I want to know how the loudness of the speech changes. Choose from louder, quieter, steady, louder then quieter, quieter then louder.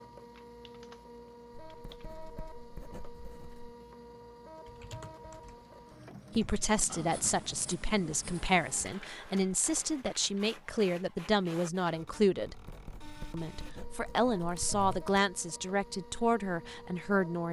steady.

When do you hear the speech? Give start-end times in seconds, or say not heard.
6.3-12.6, 13.3-17.4.